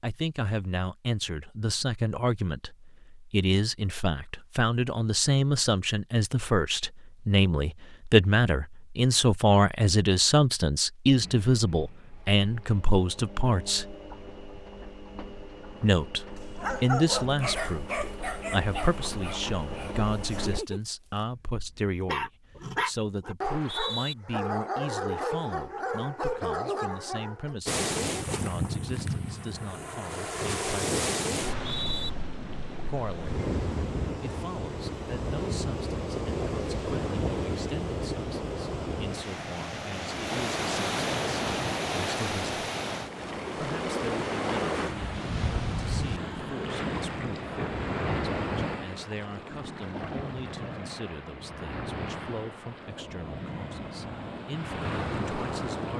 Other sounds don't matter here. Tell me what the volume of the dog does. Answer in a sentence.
The volume of the dog goes down, then up.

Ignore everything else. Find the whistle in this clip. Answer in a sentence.
You can hear the whistle from 23.4 to 24.1 s and from 31.5 to 32.1 s.